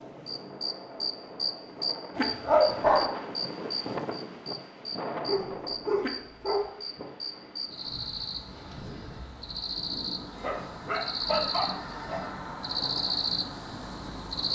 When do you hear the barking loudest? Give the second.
3 s.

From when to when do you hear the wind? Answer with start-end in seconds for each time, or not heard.
0.0-14.4.